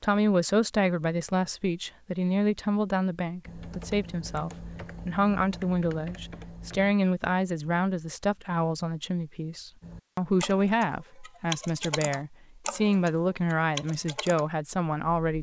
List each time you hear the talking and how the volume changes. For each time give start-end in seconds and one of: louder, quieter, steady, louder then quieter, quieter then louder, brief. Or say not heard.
0.0-15.3 steady.